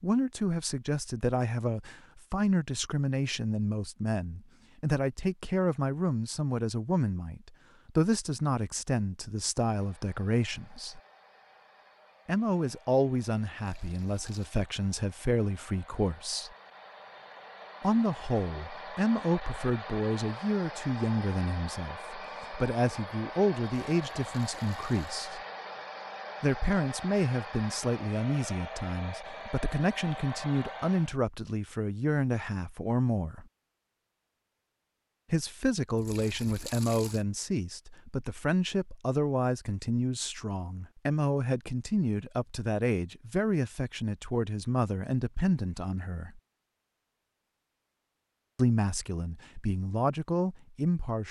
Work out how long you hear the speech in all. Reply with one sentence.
You can hear the speech for 44 seconds altogether.